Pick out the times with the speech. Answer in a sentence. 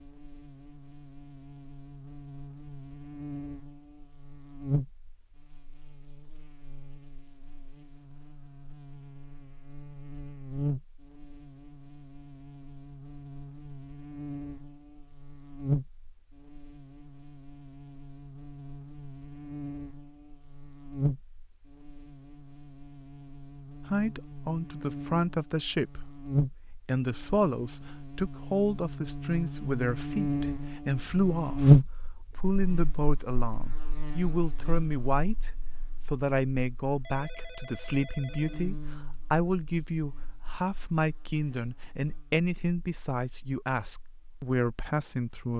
You can hear the speech from 23.9 to 45.5 s.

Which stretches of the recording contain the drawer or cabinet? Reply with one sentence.
The drawer or cabinet can't be heard in this clip.